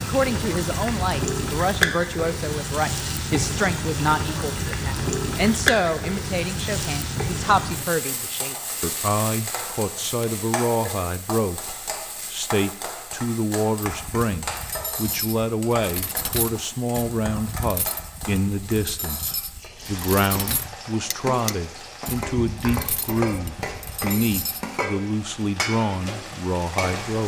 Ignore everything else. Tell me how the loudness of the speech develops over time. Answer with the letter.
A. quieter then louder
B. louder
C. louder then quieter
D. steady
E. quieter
D.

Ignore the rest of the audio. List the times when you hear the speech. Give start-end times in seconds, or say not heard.
0.0-27.2.